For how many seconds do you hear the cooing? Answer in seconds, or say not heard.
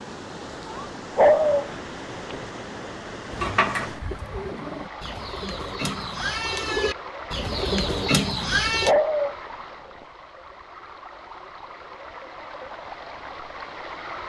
6 s.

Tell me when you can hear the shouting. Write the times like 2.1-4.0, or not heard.
not heard.